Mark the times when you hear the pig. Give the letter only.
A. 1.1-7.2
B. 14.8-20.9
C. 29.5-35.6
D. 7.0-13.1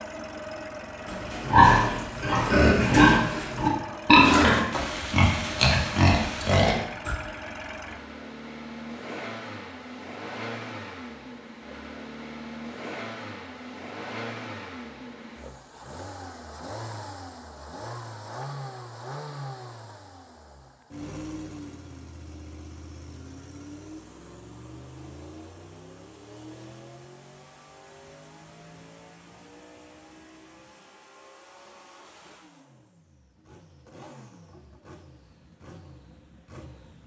A.